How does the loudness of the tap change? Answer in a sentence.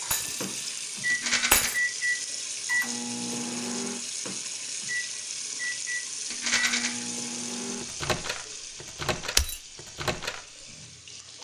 The loudness of the tap goes down.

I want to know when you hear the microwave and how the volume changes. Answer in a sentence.
The microwave can be heard from 0.0 to 11.3 s, getting quieter.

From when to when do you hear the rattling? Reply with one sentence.
The rattling can be heard from 1.1 to 1.7 s and from 6.3 to 6.9 s.